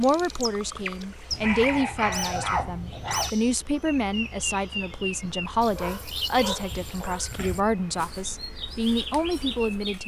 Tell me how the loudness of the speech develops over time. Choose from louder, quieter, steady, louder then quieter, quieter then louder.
steady.